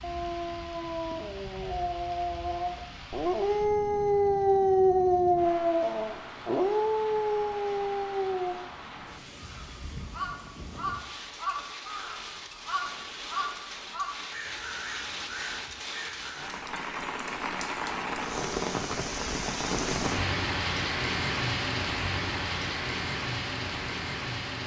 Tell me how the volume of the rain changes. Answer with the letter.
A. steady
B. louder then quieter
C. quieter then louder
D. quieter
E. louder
E.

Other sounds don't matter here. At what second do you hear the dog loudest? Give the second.
5 s.